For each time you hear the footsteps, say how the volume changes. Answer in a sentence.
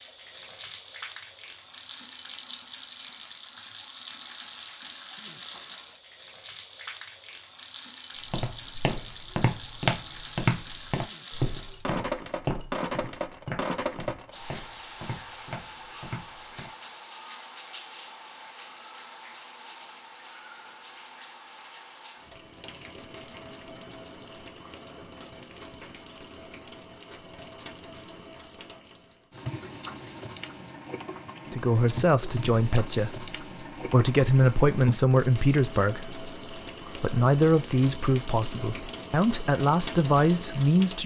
You can hear the footsteps from 8.3 to 16.7 s, getting quieter.